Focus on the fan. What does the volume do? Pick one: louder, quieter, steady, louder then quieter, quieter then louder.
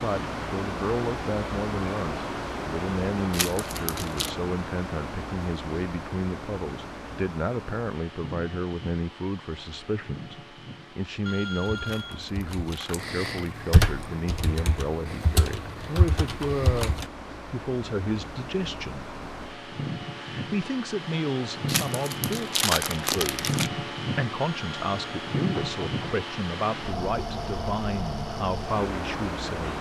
quieter then louder.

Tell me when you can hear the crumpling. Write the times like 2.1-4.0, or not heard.
3.3-4.3, 11.8-13.6, 21.6-23.7.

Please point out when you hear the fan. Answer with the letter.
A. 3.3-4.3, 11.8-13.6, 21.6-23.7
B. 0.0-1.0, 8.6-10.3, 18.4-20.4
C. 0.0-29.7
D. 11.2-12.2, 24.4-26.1
C.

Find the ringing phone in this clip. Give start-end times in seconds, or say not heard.
11.2-12.2, 24.4-26.1.